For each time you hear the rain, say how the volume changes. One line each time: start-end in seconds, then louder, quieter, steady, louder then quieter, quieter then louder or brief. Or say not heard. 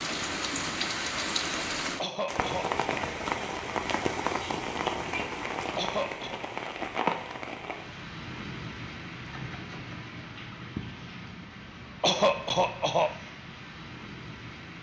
0.0-14.7 quieter.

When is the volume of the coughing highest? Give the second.
12 s.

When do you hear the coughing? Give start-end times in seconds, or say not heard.
1.9-2.7, 5.8-6.4, 12.0-13.2.